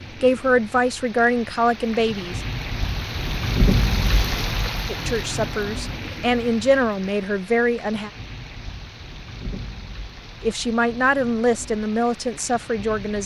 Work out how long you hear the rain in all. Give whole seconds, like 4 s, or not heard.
13 s.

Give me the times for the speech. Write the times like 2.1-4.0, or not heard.
0.2-2.4, 4.8-8.1, 10.4-13.2.